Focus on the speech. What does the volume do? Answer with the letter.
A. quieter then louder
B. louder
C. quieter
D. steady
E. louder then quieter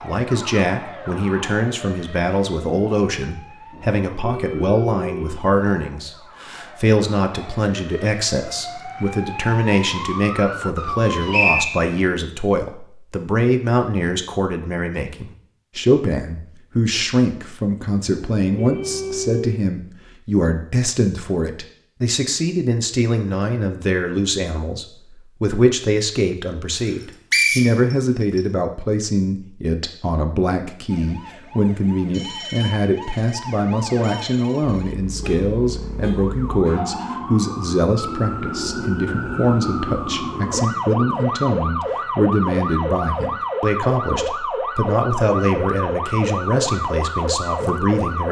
D.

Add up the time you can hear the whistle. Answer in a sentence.
The whistle can be heard for 2 seconds in total.